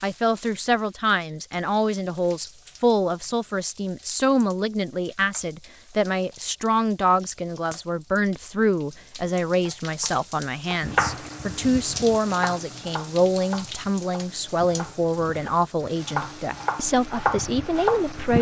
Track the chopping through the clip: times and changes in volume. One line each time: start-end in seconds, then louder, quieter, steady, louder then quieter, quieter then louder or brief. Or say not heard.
10.7-18.3 quieter then louder.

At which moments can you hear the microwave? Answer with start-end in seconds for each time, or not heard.
not heard.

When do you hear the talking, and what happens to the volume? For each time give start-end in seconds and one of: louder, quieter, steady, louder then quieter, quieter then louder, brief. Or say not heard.
0.0-18.3 steady.